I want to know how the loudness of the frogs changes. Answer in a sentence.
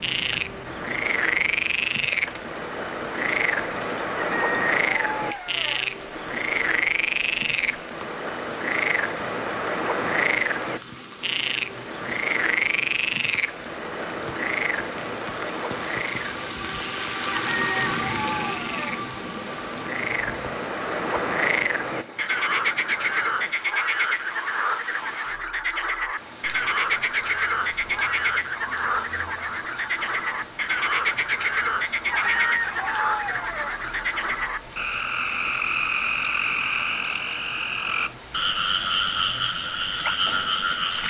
The loudness of the frogs stays about the same.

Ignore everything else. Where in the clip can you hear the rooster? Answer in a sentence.
You can hear the rooster from 4.2 to 5.8 s, from 17.3 to 19.0 s and from 32.1 to 33.8 s.